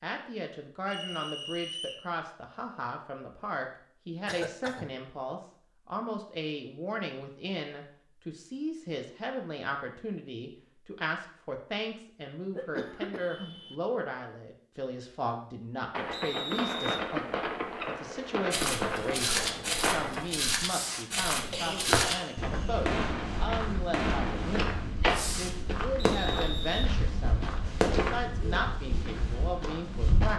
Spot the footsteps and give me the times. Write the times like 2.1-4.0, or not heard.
18.5-30.3.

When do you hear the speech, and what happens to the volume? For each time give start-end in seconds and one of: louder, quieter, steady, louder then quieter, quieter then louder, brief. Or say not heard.
0.0-30.3 steady.